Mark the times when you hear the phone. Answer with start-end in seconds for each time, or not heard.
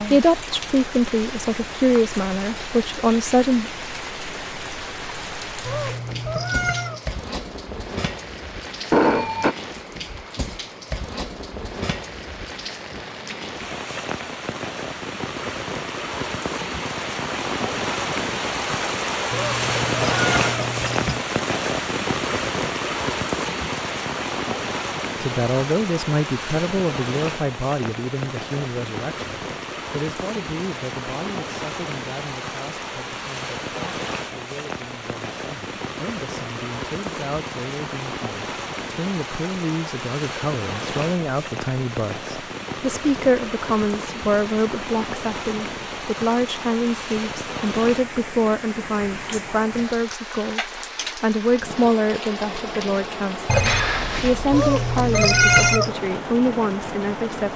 8.9-9.6, 53.5-55.8.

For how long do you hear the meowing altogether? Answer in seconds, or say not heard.
5 s.